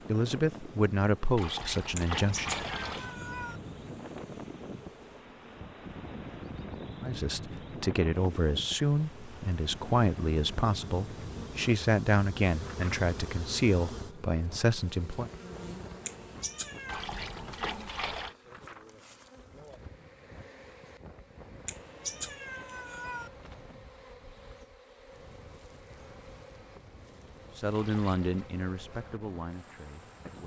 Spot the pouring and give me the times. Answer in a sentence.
The pouring can be heard from 1.4 to 3.1 s, from 16.9 to 18.4 s and from 27.7 to 28.4 s.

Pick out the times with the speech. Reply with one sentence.
The speech can be heard from 0.1 to 2.5 s, from 7.0 to 15.3 s and from 27.6 to 30.4 s.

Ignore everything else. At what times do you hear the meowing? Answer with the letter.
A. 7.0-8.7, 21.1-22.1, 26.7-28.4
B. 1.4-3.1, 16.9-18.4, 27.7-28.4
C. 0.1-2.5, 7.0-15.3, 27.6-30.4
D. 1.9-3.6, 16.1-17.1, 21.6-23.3
D.